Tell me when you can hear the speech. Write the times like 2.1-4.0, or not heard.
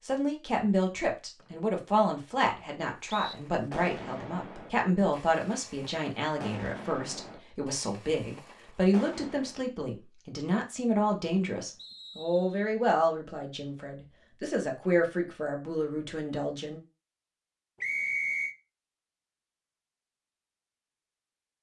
0.1-16.8.